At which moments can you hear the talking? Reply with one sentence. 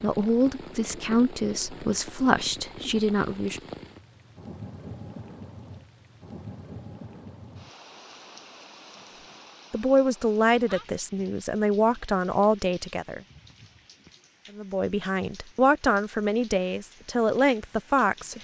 You can hear the talking from 0.0 to 3.6 s, from 9.7 to 13.2 s and from 14.6 to 18.3 s.